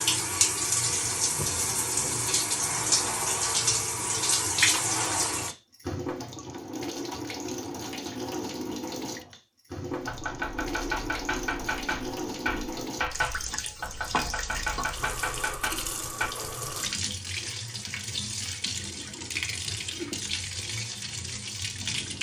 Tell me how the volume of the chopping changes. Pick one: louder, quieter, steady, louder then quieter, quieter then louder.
steady.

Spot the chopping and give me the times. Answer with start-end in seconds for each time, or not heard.
10.0-16.3.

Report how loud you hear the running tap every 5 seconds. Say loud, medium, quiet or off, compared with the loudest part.
loud, medium, medium, medium, medium.